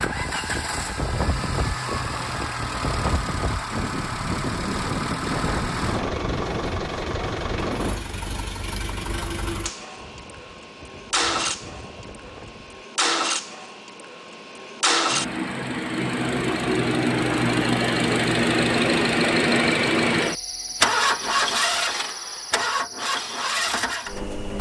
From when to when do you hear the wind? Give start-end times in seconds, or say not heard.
0.0-12.8.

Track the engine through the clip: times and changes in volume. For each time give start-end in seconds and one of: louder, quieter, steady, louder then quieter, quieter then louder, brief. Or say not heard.
0.0-24.5 louder.